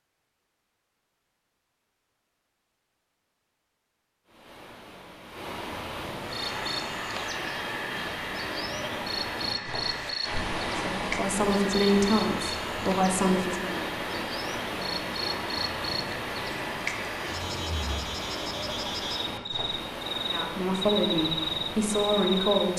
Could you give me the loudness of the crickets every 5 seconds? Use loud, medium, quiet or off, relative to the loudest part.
off, medium, medium, medium, loud.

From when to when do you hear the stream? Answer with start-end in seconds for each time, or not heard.
4.2-22.7.